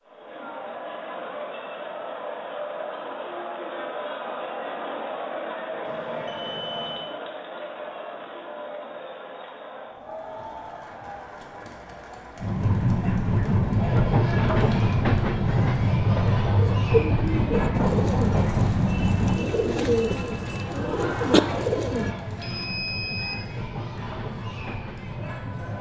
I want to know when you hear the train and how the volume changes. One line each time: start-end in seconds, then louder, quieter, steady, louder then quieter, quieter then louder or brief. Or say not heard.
12.3-25.7 quieter.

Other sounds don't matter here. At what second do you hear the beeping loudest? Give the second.
23 s.